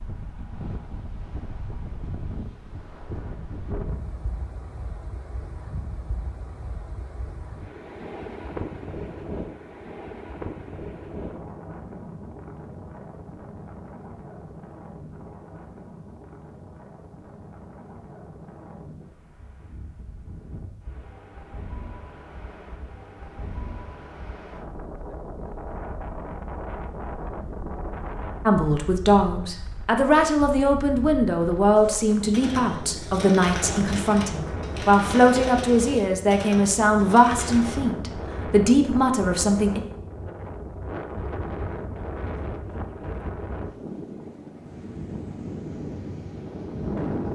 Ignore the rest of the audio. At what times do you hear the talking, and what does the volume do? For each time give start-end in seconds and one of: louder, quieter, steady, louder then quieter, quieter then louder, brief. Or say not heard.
28.4-39.8 steady.